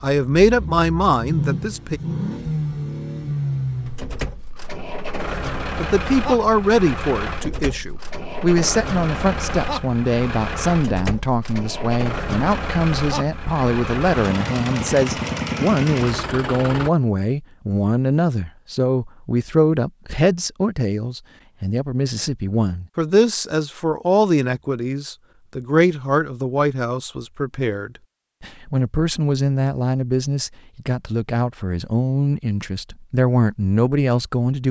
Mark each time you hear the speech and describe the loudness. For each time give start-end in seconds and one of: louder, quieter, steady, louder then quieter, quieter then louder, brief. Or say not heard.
0.0-2.0 brief
5.8-34.6 steady.